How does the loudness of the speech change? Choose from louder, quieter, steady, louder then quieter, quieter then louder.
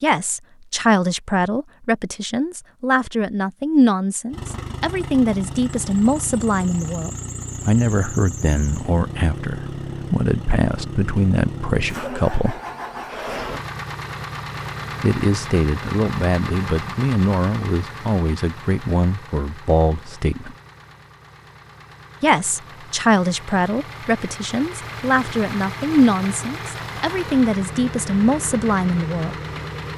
steady.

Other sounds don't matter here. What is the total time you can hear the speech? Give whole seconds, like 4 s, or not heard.
25 s.